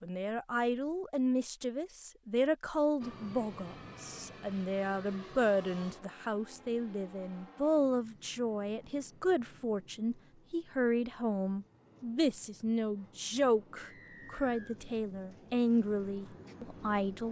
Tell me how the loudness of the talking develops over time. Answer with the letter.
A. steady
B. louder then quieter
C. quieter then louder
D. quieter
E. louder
A.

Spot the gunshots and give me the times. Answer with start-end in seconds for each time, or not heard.
not heard.